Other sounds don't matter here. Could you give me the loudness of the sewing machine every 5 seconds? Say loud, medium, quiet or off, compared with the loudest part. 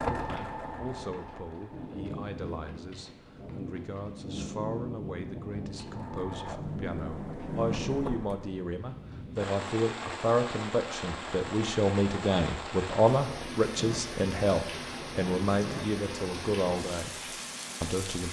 loud, medium, off, off.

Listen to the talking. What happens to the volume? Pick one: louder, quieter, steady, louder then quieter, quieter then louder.
louder.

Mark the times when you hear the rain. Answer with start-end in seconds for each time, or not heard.
0.0-18.2.